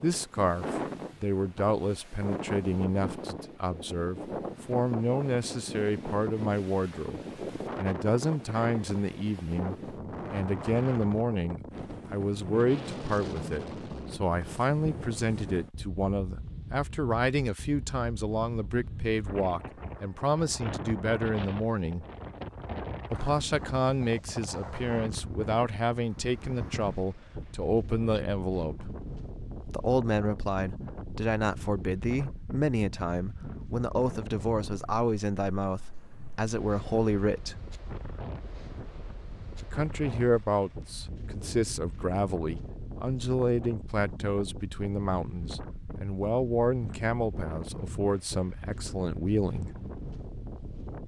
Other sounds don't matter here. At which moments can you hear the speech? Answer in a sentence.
You can hear the speech from 0.0 to 22.1 s, from 23.1 to 28.9 s, from 29.6 to 37.6 s and from 39.6 to 49.7 s.